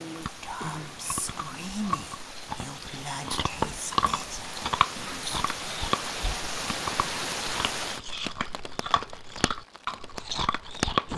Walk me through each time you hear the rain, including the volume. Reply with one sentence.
You can hear the rain from 0.0 to 11.1 s, getting louder then quieter.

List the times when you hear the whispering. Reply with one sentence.
You can hear the whispering from 0.3 to 5.2 s.